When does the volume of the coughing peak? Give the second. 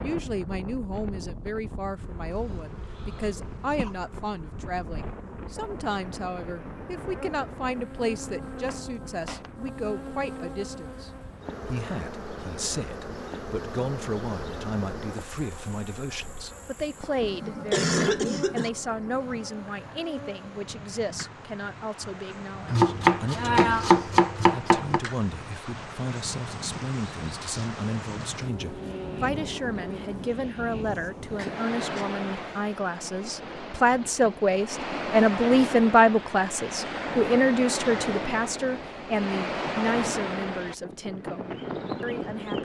18 s.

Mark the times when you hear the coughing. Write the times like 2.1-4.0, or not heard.
2.3-4.0, 17.2-18.7, 31.4-32.0.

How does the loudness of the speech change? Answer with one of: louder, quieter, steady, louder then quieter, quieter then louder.
louder.